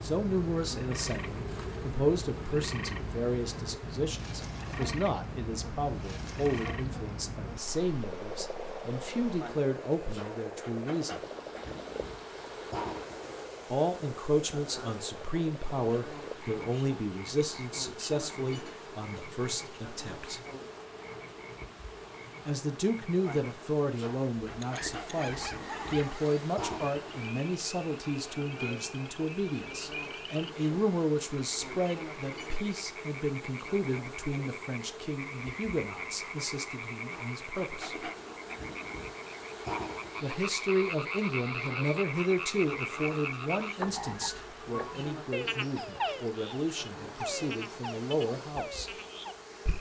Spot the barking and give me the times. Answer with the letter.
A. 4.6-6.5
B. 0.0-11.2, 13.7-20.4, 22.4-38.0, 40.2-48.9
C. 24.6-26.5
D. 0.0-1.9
C.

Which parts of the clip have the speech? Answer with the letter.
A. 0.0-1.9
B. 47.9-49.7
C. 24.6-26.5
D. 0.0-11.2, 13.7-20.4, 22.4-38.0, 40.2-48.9
D.